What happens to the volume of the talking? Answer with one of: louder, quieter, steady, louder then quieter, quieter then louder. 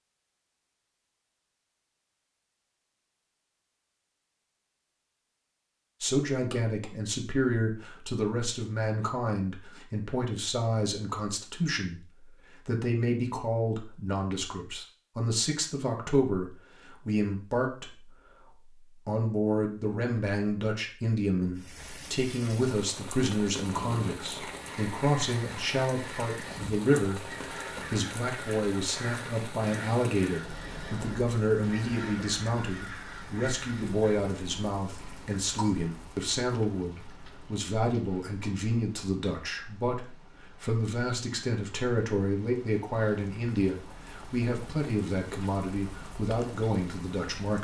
steady.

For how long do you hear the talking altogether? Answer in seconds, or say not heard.
41 s.